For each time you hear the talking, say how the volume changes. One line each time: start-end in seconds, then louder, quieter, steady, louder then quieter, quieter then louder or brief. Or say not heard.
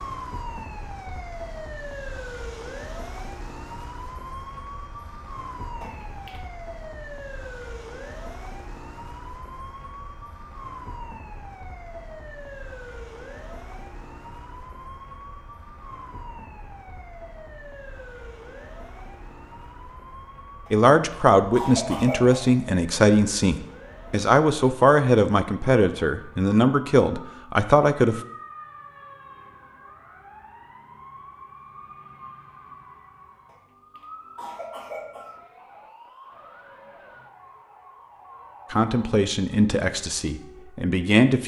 20.7-28.2 steady
38.7-41.4 brief.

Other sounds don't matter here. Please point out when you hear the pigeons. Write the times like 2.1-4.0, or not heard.
not heard.